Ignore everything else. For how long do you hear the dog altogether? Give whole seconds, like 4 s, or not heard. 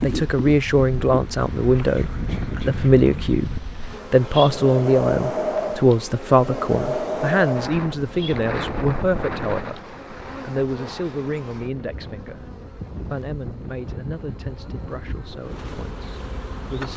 not heard.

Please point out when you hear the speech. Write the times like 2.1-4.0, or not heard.
0.0-9.8, 10.4-12.4, 13.1-16.9.